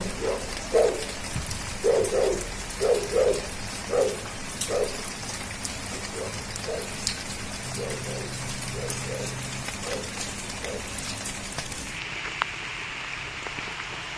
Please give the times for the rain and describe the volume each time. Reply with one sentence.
The rain can be heard from 0.0 to 14.1 s, at a steady volume.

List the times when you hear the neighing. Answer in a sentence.
The neighing can be heard from 7.6 to 9.7 s.